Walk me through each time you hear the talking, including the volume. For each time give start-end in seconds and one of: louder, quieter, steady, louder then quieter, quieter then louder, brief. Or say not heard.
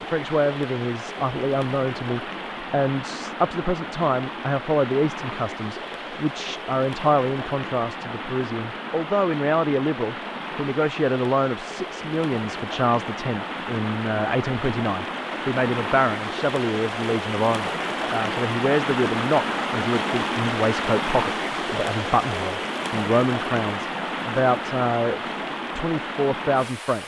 0.1-27.0 steady.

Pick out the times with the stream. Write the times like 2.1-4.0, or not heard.
0.0-27.0.